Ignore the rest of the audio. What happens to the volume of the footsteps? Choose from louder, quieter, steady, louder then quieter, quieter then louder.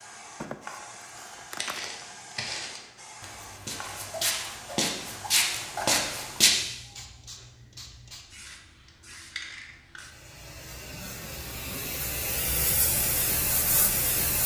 quieter then louder.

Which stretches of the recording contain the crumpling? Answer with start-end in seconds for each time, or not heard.
0.4-1.9.